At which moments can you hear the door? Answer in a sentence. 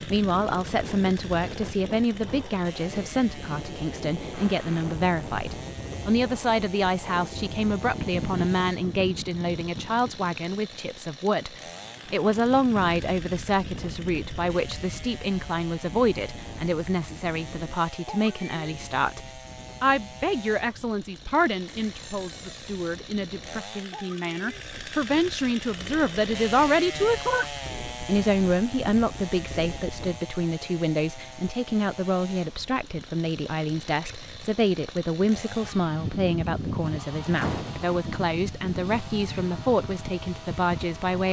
The door can be heard from 4.3 to 4.9 s, from 21.6 to 23.0 s and from 37.4 to 37.9 s.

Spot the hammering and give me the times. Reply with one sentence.
The hammering can't be heard in this clip.